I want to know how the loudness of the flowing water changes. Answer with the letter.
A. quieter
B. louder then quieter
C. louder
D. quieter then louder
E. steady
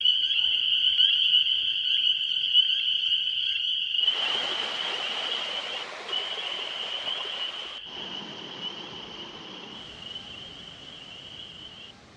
A.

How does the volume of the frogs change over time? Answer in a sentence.
The volume of the frogs goes down.